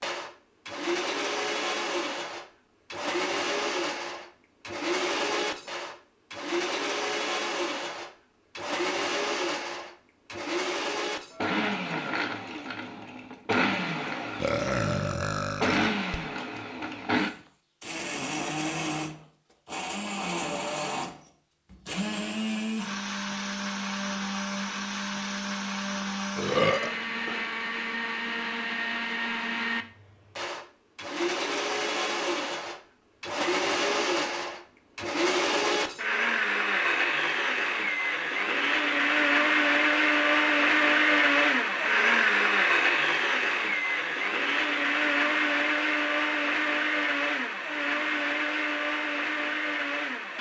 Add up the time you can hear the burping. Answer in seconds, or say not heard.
3 s.